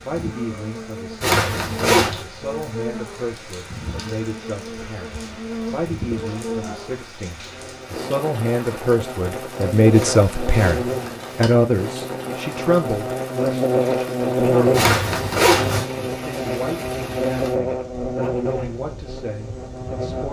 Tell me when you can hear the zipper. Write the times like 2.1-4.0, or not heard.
1.2-2.2, 9.9-11.7, 14.7-15.8.